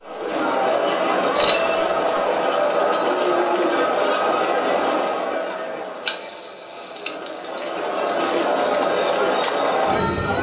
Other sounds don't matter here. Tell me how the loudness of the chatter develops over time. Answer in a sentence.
The volume of the chatter goes down, then up.